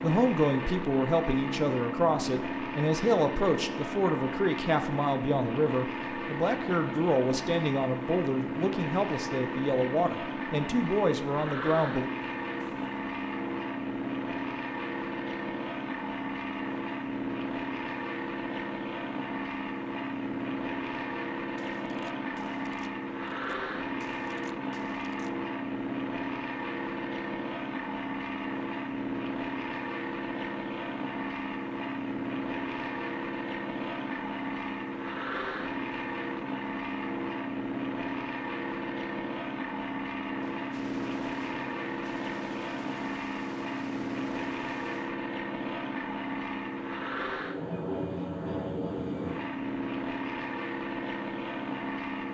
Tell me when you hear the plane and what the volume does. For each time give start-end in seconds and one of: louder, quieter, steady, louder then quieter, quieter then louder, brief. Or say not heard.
0.0-52.2 steady.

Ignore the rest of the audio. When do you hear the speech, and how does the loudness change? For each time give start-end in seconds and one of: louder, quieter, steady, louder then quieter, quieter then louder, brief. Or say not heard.
0.0-12.1 steady.